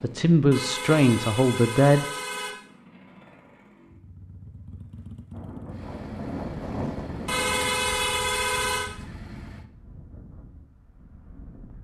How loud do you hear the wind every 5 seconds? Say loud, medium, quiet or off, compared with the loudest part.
off, loud, quiet.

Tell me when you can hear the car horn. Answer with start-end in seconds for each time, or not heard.
0.5-2.5, 7.2-8.9.